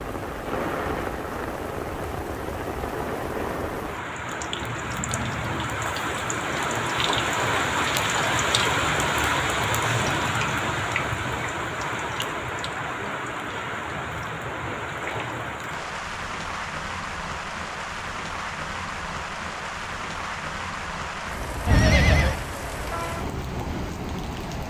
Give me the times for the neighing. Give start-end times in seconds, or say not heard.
21.6-22.4.